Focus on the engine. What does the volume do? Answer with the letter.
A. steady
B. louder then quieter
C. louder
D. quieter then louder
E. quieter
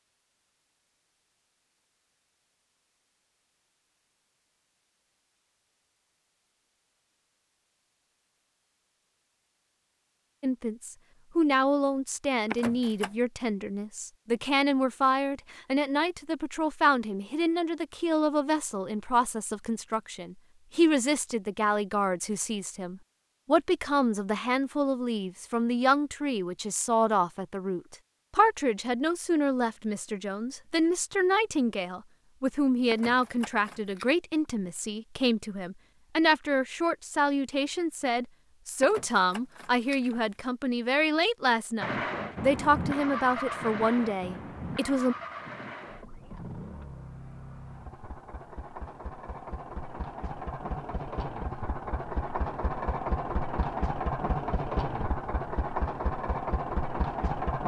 D.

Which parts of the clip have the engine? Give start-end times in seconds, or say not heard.
41.8-57.6.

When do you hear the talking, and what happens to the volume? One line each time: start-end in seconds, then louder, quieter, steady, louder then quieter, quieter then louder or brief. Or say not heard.
10.4-45.1 steady.